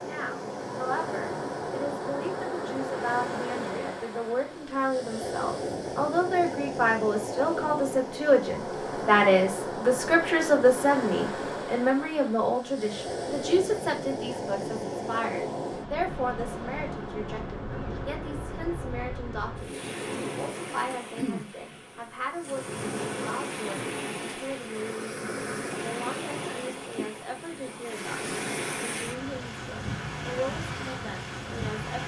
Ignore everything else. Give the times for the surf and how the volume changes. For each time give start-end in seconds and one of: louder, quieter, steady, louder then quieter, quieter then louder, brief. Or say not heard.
0.0-32.0 steady.